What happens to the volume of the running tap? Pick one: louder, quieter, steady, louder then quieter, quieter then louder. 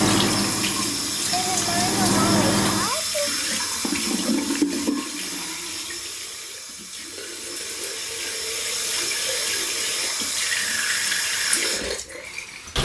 quieter then louder.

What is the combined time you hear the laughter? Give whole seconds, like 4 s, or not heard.
2 s.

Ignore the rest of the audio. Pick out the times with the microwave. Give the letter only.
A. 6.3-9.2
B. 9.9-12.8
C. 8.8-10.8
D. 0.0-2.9
D.